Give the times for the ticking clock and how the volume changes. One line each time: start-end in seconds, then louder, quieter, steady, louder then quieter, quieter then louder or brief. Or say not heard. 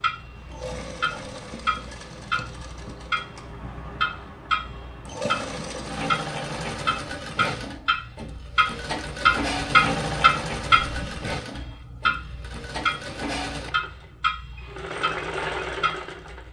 0.0-16.4 louder then quieter.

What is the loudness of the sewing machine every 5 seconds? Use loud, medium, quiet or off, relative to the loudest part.
medium, loud, loud, loud.